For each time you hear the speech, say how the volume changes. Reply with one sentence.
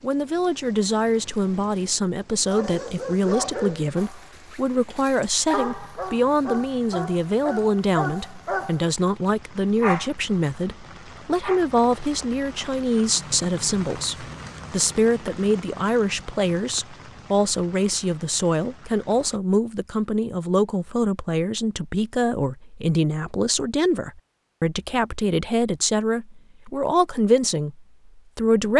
You can hear the speech from 0.0 to 28.7 s, at a steady volume.